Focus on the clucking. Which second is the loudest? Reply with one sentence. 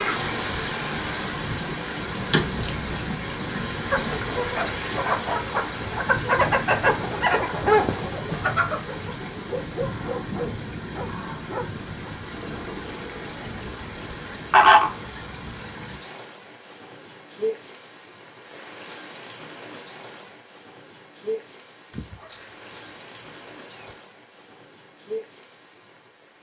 The loudest moment of the clucking is at 15 seconds.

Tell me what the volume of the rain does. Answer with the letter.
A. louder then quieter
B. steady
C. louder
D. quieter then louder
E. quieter
E.